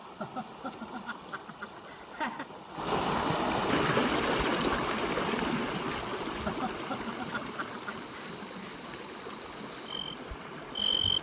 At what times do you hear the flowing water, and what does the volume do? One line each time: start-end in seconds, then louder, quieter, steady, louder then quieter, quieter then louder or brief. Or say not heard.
0.0-11.1 louder then quieter.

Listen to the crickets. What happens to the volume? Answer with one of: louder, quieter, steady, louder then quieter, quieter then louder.
louder.